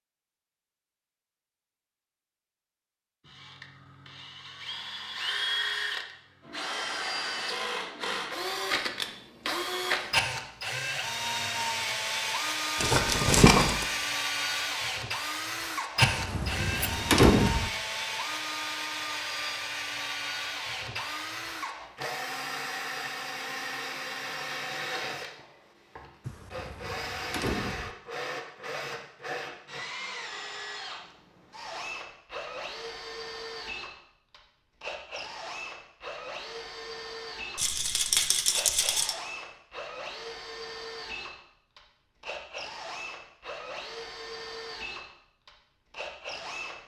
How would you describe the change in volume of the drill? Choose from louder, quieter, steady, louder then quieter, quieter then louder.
quieter.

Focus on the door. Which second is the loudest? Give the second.
17 s.